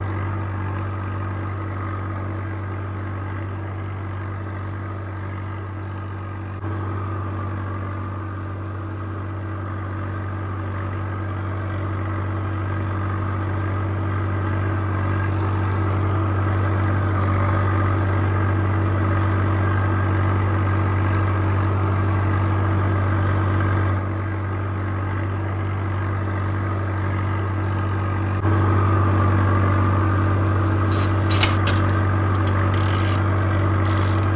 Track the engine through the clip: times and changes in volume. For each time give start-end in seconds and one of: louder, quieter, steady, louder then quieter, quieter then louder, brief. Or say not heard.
0.0-34.3 louder.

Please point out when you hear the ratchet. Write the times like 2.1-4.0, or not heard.
30.6-34.3.